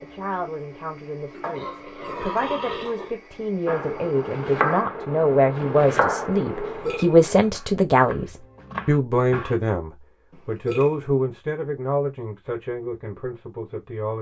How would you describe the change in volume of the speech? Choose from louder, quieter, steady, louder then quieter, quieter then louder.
louder then quieter.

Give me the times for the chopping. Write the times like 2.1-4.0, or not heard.
3.6-9.6.